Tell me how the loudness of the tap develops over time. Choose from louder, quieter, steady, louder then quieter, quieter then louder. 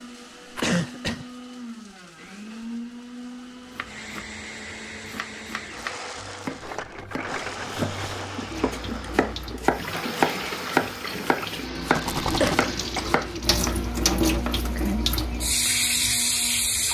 louder.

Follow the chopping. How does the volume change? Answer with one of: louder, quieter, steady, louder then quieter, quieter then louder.
louder then quieter.